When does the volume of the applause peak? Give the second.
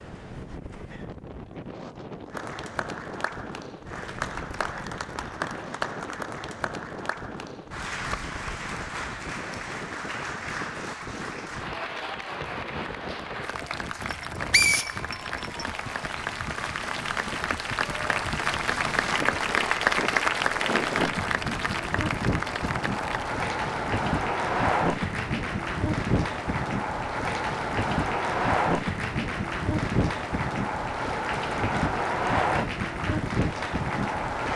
20 s.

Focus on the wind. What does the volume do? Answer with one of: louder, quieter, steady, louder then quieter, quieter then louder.
louder.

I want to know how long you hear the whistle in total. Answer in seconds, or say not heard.
2 s.